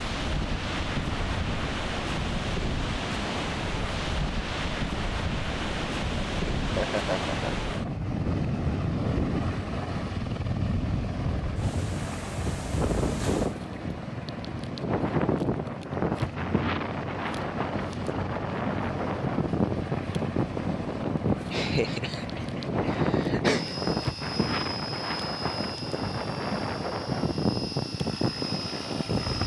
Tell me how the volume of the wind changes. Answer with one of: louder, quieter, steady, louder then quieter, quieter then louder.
steady.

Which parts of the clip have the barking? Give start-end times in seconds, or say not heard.
not heard.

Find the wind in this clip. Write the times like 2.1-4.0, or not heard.
0.0-29.4.